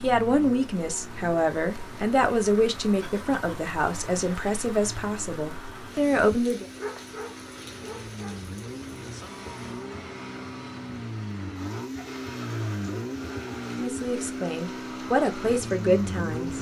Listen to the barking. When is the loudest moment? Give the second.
7 s.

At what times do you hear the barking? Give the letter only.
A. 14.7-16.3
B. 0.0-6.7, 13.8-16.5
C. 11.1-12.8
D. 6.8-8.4
D.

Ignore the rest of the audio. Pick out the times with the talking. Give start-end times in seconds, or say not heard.
0.0-6.7, 13.8-16.5.